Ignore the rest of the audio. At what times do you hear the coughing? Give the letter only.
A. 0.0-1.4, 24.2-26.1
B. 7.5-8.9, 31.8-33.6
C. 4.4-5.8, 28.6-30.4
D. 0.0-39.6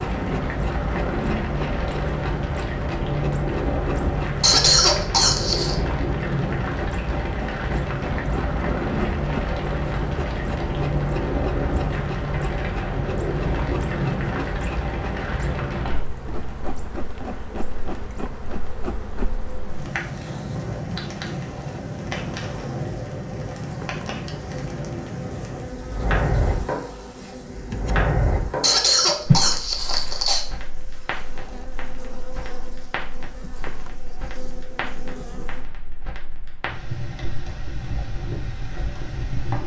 C.